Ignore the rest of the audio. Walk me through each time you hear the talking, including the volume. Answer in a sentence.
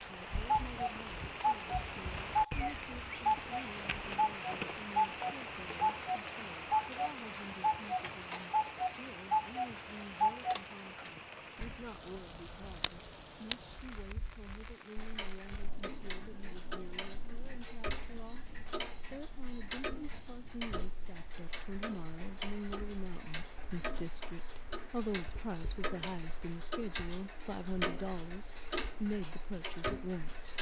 You can hear the talking from 0.0 to 30.5 s, getting louder.